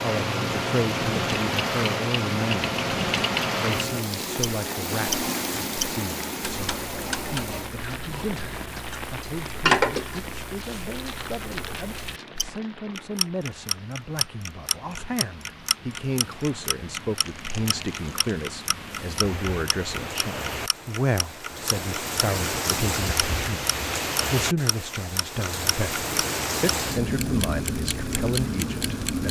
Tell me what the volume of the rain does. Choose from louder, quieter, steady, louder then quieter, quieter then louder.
quieter then louder.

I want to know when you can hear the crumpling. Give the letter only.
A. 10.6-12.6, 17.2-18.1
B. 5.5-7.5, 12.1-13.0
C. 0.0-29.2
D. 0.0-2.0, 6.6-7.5
A.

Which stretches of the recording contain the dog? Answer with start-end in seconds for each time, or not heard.
not heard.